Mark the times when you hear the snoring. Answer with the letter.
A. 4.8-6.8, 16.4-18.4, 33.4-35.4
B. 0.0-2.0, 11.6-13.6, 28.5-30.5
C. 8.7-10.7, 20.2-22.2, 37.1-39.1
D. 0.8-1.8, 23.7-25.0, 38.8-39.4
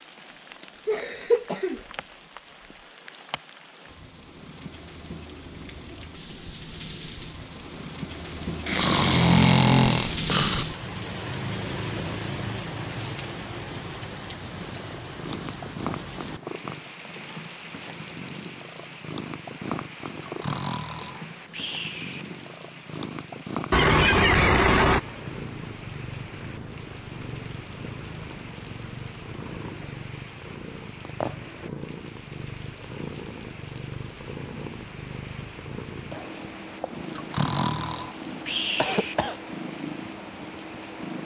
C.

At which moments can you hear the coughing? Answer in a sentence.
You can hear the coughing from 0.8 to 1.8 s, from 23.7 to 25.0 s and from 38.8 to 39.4 s.